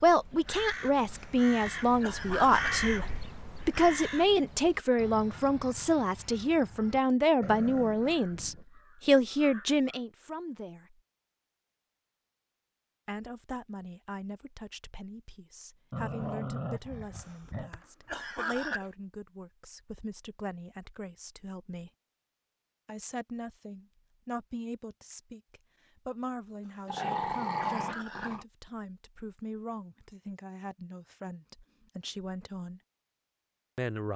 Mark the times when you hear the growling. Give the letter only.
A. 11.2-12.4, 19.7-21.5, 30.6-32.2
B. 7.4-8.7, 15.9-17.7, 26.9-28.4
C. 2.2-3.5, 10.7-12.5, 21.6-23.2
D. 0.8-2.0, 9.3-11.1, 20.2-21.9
B.